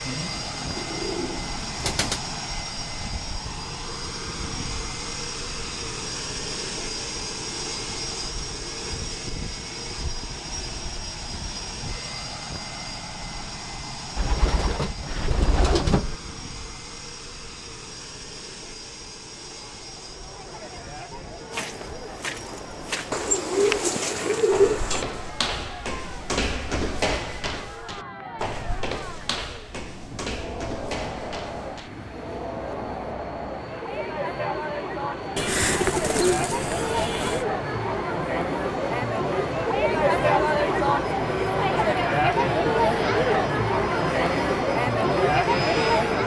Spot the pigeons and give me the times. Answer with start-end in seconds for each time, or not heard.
0.0-2.2, 14.2-16.1, 23.1-25.1, 35.4-37.5.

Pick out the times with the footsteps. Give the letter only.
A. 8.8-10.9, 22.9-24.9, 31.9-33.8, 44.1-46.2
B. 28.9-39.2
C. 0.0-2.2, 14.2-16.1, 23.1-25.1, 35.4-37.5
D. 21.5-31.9
D.